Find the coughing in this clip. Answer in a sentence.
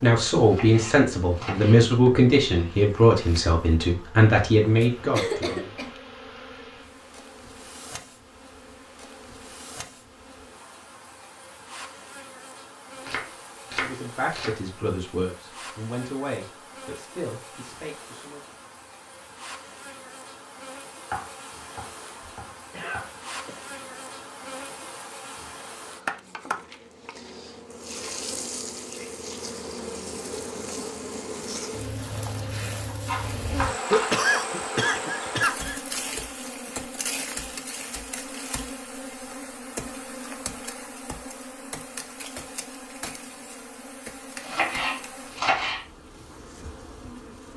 You can hear the coughing from 5.1 to 5.9 s, from 22.2 to 23.6 s and from 33.9 to 35.8 s.